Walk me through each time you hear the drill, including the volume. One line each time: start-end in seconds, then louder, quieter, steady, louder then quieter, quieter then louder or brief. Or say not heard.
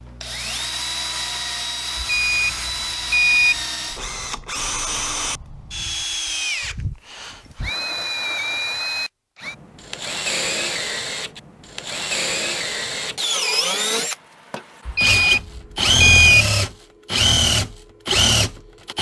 0.0-18.9 louder.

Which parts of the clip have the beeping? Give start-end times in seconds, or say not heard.
1.9-3.6, 14.8-16.4.